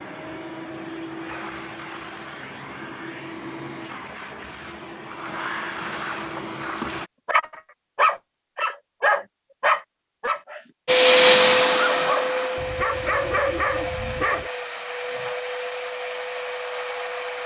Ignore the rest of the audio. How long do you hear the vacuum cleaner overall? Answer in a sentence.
You can hear the vacuum cleaner for 14 seconds altogether.